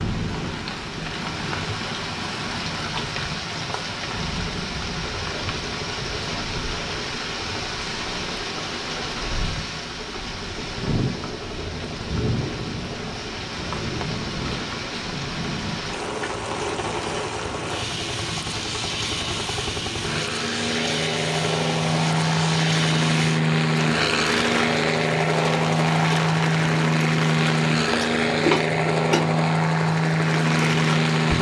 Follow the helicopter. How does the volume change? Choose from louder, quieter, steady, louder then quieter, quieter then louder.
louder.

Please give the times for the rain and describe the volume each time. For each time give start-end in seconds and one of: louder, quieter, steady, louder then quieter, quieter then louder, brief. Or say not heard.
0.0-31.3 steady.